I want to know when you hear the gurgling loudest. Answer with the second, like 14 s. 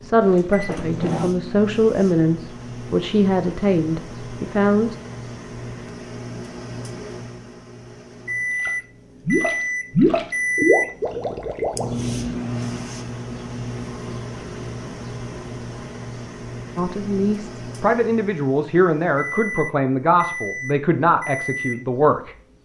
10 s.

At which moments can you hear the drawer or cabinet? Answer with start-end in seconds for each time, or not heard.
0.2-1.3.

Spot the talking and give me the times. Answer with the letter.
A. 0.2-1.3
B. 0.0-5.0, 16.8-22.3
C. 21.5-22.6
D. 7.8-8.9
B.